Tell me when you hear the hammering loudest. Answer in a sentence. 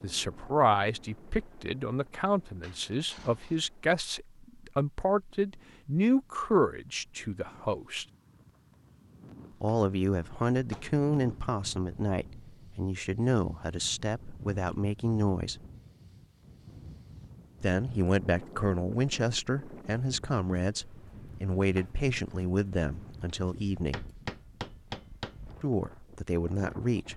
The volume of the hammering peaks at 25 seconds.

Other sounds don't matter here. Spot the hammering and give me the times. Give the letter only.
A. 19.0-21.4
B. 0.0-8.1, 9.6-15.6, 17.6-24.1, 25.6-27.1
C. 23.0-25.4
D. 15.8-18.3
C.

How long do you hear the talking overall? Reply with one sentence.
The talking can be heard for 22 seconds in total.